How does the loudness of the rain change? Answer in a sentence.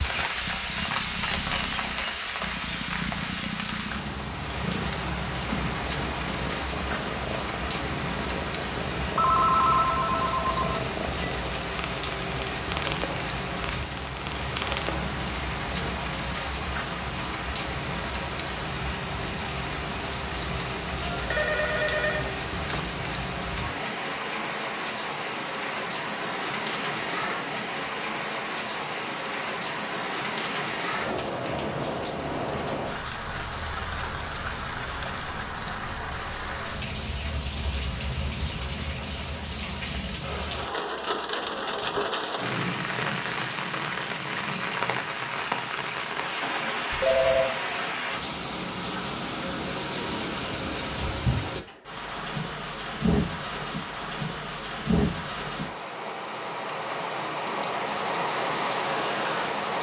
The loudness of the rain stays about the same.